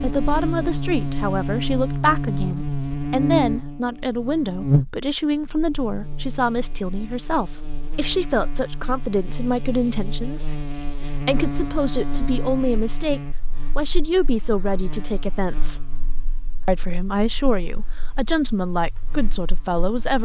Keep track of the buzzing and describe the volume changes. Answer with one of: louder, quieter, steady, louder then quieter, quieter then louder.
quieter.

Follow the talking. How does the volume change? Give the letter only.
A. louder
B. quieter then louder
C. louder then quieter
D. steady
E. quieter
D.